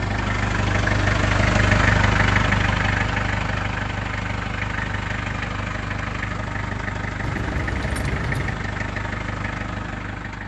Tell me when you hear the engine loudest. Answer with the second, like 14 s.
2 s.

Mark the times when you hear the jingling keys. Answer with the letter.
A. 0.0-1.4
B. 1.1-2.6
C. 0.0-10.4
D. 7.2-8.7
D.